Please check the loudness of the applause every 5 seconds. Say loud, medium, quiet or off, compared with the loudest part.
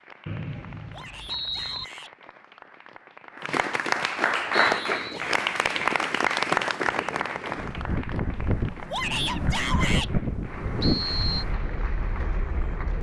loud, loud, quiet.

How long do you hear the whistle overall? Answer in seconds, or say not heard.
3 s.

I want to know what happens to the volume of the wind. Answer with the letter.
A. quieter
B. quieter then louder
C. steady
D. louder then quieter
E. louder
D.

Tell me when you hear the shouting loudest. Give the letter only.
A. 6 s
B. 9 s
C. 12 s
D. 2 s
B.